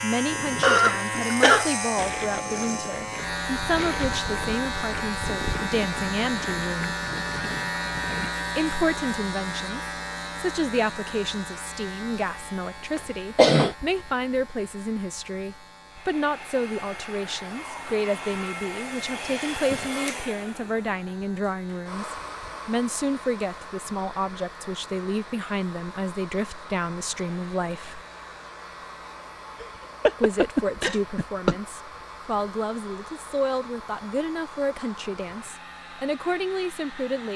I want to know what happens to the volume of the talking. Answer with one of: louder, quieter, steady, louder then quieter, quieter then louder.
steady.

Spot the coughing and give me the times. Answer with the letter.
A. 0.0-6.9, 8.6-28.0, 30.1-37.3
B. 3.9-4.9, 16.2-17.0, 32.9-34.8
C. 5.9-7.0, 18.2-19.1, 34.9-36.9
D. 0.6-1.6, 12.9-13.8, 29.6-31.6
D.